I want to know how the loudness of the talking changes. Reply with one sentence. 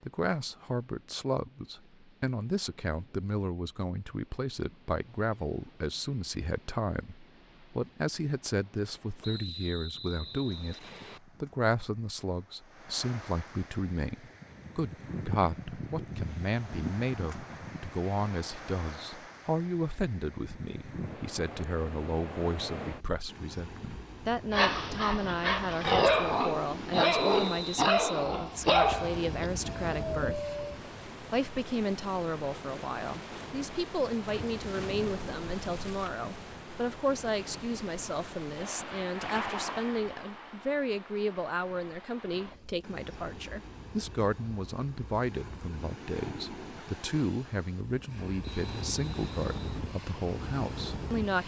The volume of the talking stays about the same.